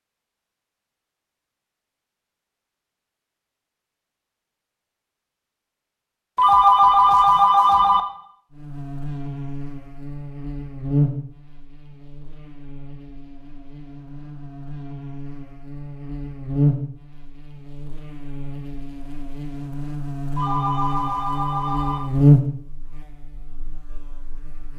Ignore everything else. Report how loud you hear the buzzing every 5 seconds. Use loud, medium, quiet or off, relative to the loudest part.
off, medium, medium, medium, loud.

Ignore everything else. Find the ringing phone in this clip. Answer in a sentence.
You can hear the ringing phone from 6.3 to 8.1 s and from 20.4 to 22.0 s.